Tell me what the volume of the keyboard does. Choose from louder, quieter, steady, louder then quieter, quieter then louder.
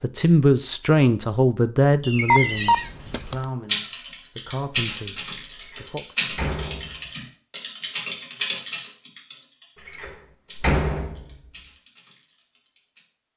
quieter.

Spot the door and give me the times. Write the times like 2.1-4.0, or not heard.
2.0-2.9, 5.6-7.1, 9.8-11.3.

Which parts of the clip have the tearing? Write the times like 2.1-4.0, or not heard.
not heard.